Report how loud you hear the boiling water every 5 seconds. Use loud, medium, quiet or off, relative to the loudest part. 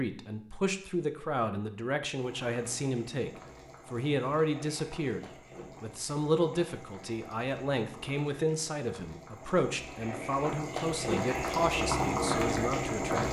quiet, quiet, loud.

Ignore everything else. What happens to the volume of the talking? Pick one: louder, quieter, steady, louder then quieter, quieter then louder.
steady.